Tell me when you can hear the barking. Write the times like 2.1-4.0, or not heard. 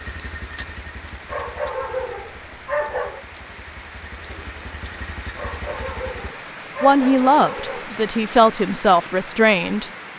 1.2-3.2, 5.3-7.8.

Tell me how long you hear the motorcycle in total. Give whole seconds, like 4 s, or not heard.
6 s.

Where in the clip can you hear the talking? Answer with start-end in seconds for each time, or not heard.
6.8-9.9.